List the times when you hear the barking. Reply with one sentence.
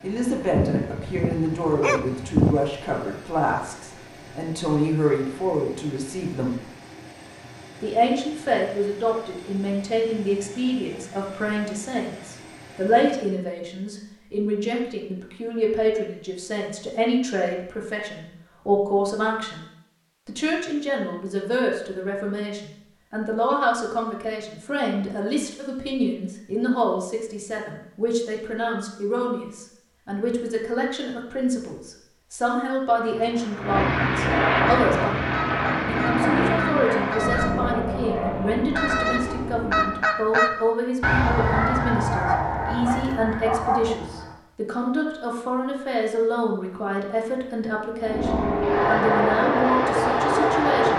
The barking can be heard from 0.6 to 2.6 s and from 42.1 to 44.0 s.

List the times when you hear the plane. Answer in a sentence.
The plane can be heard from 0.0 to 13.4 s, from 32.9 to 40.0 s and from 48.0 to 50.9 s.